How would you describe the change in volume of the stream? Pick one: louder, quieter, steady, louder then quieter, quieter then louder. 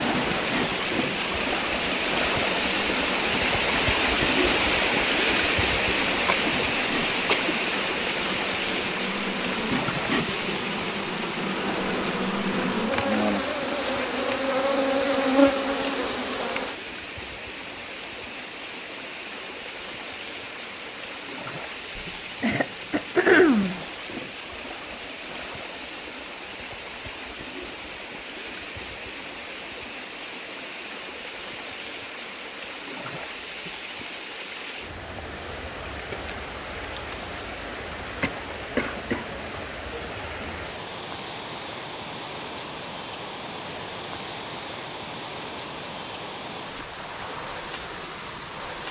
quieter.